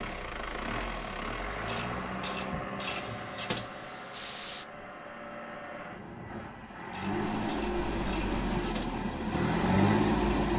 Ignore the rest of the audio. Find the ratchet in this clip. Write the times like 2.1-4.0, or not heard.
1.6-3.7, 6.9-8.9.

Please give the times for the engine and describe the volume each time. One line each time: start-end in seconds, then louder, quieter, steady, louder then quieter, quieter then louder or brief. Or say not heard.
0.0-10.5 quieter then louder.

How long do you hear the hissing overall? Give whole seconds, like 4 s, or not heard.
2 s.